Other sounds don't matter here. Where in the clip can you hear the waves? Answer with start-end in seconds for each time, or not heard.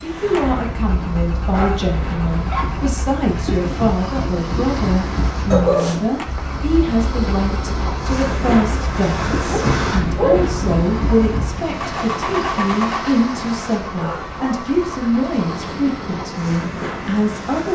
0.0-17.7.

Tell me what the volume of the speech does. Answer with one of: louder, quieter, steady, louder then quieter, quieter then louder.
steady.